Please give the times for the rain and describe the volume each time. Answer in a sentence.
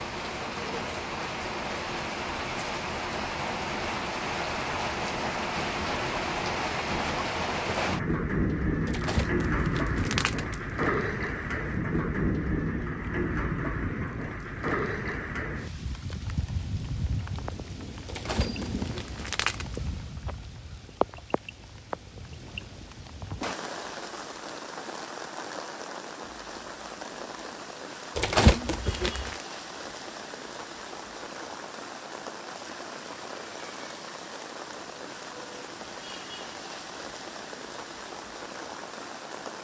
You can hear the rain from 0.0 to 39.5 s, getting quieter.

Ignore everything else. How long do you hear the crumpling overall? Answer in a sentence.
You can hear the crumpling for 5 seconds altogether.